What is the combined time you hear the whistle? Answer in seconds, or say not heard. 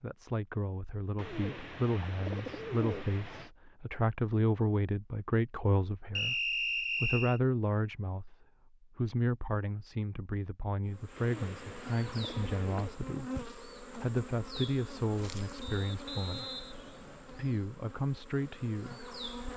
3 s.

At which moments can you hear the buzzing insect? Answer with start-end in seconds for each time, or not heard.
10.8-19.5.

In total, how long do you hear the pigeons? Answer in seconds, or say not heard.
4 s.